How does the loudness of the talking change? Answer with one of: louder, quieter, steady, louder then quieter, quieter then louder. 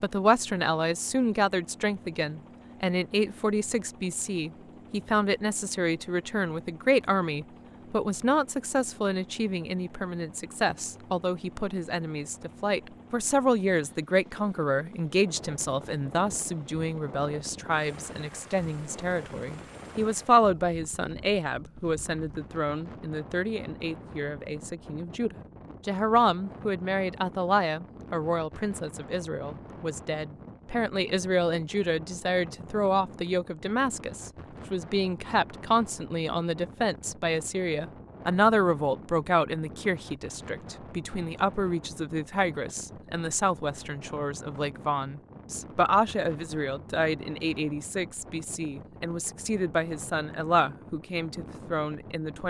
steady.